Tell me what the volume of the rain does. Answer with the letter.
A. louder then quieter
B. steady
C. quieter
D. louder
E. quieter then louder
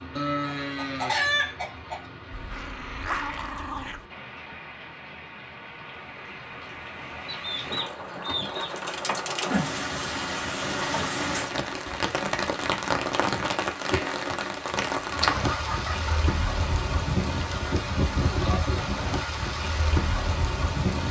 D.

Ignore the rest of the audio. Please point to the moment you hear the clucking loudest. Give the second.
1 s.